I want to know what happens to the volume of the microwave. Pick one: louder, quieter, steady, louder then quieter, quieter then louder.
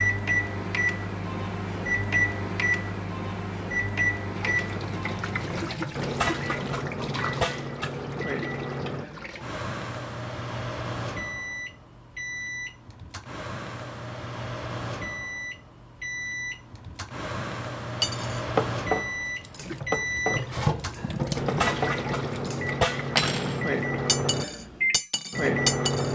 quieter then louder.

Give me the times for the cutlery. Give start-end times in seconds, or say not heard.
18.0-26.0.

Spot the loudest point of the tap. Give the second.
21 s.